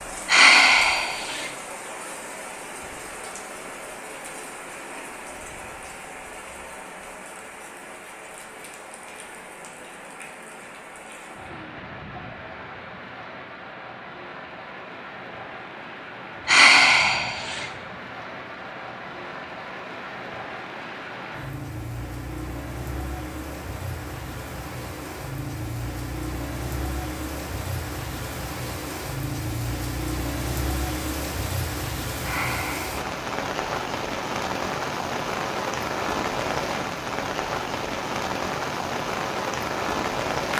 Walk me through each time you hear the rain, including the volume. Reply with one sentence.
You can hear the rain from 0.0 to 40.5 s, getting louder.